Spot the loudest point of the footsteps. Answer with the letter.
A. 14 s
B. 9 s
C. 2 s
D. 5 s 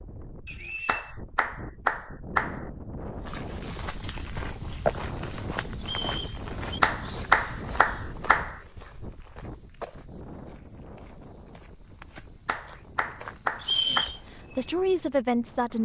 D.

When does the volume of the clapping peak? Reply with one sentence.
The loudest moment of the clapping is at 7 seconds.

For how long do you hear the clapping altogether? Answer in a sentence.
You can hear the clapping for 5 seconds altogether.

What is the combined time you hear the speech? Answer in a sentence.
You can hear the speech for 2 seconds altogether.